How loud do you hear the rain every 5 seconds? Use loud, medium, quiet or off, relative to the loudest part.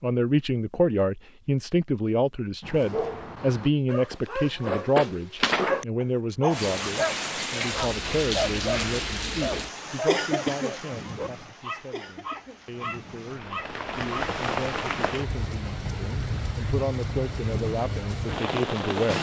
off, loud, loud, loud.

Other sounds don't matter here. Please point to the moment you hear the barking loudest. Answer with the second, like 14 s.
6 s.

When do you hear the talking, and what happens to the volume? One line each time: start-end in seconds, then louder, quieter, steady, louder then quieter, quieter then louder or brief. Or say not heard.
0.0-19.1 quieter then louder.